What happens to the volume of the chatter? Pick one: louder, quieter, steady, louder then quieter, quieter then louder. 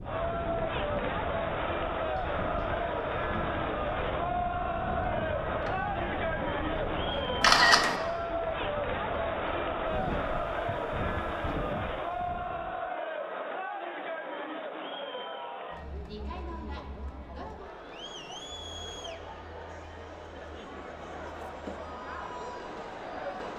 quieter.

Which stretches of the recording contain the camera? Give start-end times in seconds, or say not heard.
7.4-8.0.